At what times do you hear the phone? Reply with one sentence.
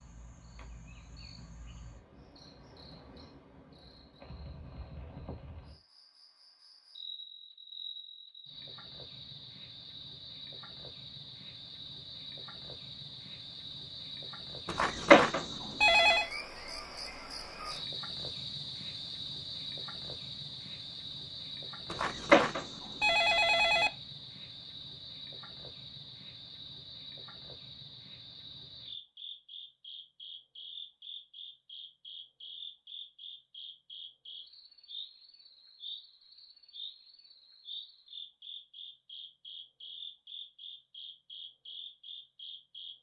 You can hear the phone from 14.7 to 16.2 s and from 21.9 to 23.9 s.